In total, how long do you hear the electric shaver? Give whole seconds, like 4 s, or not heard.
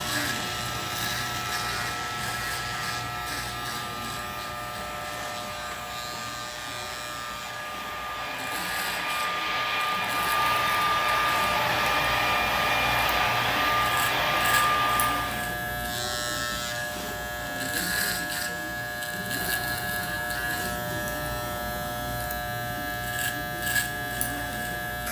25 s.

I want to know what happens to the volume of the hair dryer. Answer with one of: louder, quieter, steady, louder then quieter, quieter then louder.
louder.